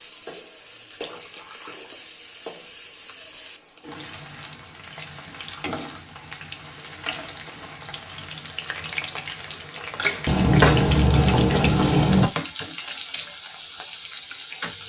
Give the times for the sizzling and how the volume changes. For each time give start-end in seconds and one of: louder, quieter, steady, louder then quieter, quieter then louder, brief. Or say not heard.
0.0-14.8 louder.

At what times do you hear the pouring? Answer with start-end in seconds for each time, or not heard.
0.9-1.9, 5.4-6.0, 10.2-12.3.